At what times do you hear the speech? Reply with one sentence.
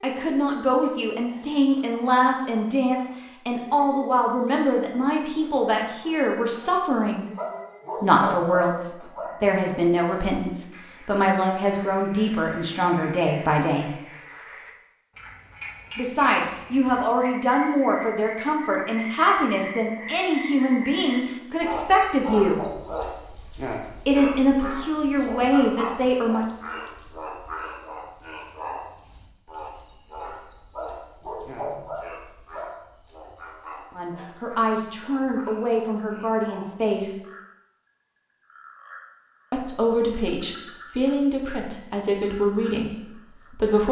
You can hear the speech from 0.0 to 7.3 s, from 8.0 to 13.9 s, from 15.9 to 22.6 s, from 24.1 to 26.4 s, from 34.0 to 37.1 s and from 39.5 to 43.8 s.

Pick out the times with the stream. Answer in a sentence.
You can't hear the stream here.